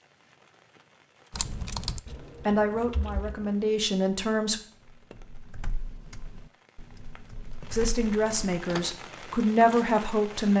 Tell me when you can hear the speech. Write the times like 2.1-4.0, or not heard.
2.5-4.6, 7.7-10.5.